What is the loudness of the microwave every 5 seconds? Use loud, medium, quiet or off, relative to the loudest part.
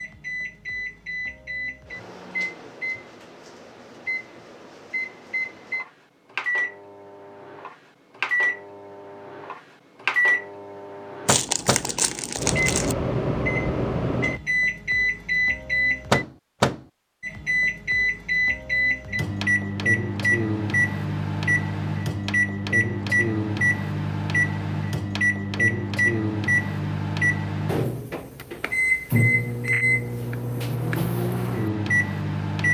medium, medium, loud, loud, loud, loud, loud.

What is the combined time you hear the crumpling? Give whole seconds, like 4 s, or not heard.
2 s.